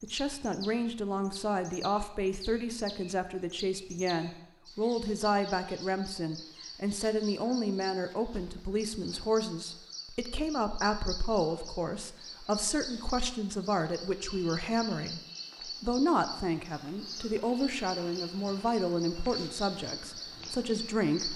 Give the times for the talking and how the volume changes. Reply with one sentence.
The talking can be heard from 0.0 to 21.3 s, at a steady volume.